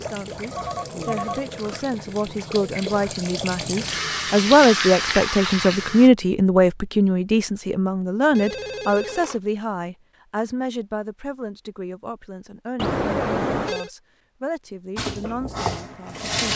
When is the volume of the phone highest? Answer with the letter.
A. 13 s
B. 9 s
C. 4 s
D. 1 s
A.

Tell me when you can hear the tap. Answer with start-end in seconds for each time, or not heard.
0.0-6.1, 14.9-16.5.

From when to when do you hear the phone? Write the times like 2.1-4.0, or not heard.
0.5-1.8, 8.3-9.4, 12.8-13.9.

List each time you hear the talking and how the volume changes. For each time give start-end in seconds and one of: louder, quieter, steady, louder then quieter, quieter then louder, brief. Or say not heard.
0.0-16.5 louder then quieter.